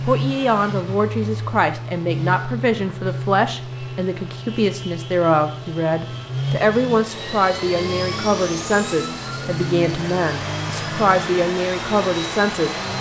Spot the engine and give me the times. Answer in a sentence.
You can hear the engine from 0.0 to 12.9 s.